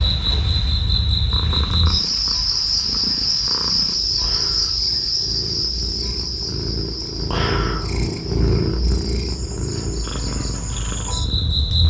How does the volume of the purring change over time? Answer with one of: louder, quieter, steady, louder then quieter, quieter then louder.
louder then quieter.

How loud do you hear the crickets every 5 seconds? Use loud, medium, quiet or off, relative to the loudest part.
loud, medium, medium.